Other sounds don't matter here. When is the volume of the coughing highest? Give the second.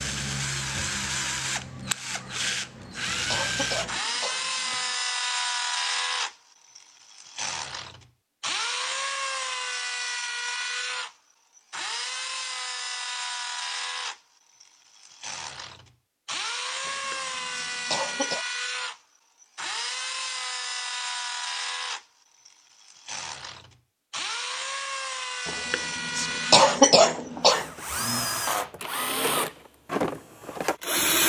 27 s.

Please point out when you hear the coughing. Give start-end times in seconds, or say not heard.
2.2-4.8, 16.9-18.4, 25.4-27.6.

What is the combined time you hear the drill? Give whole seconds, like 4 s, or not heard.
31 s.